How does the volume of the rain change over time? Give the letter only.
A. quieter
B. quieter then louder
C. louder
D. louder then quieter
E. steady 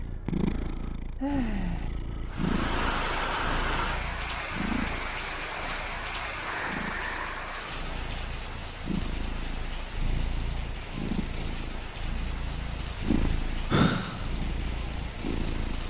A.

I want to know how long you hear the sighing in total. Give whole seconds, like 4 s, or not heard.
3 s.